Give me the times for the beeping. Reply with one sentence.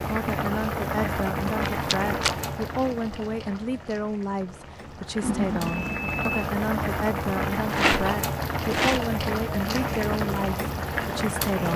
The beeping can be heard from 5.2 to 6.5 s.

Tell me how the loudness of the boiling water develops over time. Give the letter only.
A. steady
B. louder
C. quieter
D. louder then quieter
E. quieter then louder
E.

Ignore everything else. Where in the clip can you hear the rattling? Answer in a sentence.
The rattling can be heard from 1.4 to 2.4 s and from 7.7 to 9.1 s.